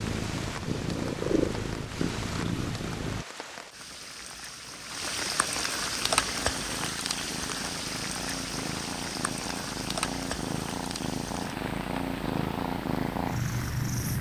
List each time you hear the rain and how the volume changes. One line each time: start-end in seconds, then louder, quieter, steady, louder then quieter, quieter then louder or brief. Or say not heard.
0.0-14.1 louder then quieter.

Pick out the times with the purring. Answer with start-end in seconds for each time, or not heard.
0.0-3.2, 5.9-14.1.